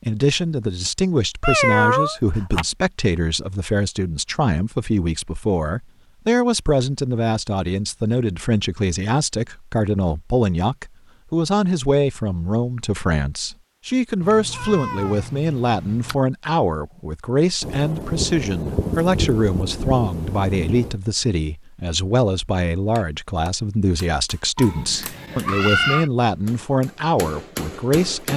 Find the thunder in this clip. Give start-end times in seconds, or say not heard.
17.6-20.9.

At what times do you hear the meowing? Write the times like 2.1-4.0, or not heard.
1.4-2.6, 14.2-16.1, 24.6-26.1.